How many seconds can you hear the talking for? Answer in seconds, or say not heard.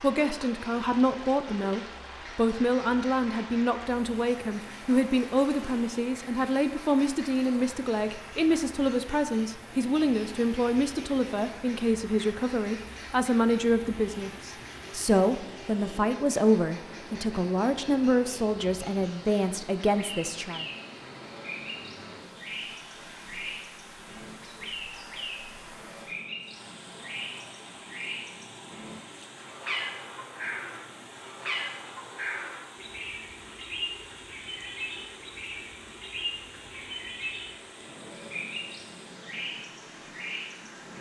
21 s.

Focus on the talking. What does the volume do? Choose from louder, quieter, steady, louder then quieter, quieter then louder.
steady.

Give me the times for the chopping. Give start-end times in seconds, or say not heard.
not heard.